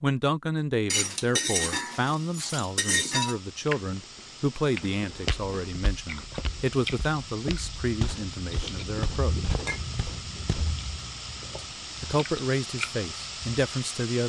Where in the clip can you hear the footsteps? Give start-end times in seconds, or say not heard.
5.1-10.8.